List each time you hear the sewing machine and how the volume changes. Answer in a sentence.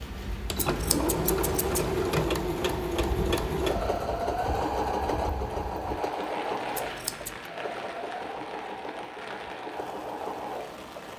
You can hear the sewing machine from 0.0 to 11.1 s, getting quieter.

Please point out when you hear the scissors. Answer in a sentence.
You can hear the scissors from 0.6 to 2.0 s and from 6.7 to 7.5 s.